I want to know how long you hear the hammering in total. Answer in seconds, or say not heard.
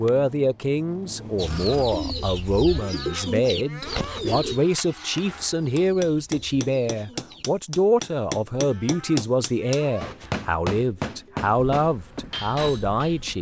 9 s.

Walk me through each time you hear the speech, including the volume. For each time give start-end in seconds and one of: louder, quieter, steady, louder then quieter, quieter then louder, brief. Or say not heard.
0.0-13.3 steady.